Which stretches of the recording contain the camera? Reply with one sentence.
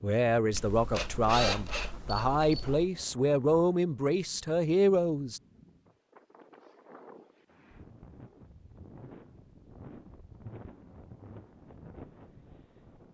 The camera can be heard from 0.5 to 2.9 s.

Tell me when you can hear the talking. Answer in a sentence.
You can hear the talking from 0.0 to 5.4 s.